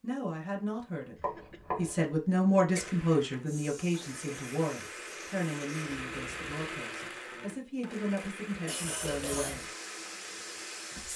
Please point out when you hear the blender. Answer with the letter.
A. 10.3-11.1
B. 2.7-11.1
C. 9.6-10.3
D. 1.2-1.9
B.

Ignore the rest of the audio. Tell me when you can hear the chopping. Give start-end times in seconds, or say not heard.
1.2-1.9.